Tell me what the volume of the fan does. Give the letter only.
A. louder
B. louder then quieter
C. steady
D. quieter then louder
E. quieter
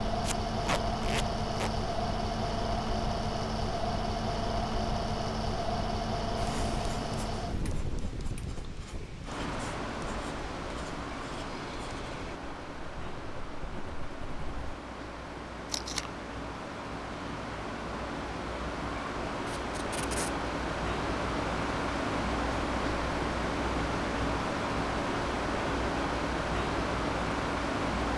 D.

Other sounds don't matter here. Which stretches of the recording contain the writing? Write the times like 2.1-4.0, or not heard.
6.3-14.8.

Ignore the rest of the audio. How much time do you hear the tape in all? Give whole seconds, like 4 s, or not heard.
3 s.